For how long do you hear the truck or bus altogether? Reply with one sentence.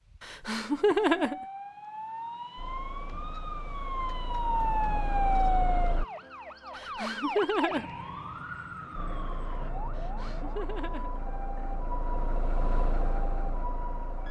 The truck or bus can be heard for 9 seconds in total.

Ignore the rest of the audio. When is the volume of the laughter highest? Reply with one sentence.
The loudest moment of the laughter is at 1 second.